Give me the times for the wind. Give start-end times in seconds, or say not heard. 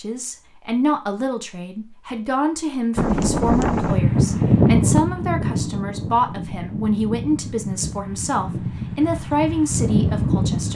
3.0-10.7.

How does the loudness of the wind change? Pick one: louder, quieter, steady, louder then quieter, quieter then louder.
quieter then louder.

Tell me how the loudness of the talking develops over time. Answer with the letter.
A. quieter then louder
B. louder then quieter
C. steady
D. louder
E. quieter
C.